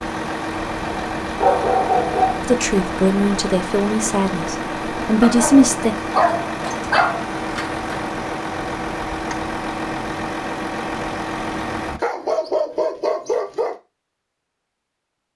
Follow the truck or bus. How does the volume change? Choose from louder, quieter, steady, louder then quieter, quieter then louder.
steady.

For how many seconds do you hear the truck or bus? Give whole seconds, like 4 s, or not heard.
12 s.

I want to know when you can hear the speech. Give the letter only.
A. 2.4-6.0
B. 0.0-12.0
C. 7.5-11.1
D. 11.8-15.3
A.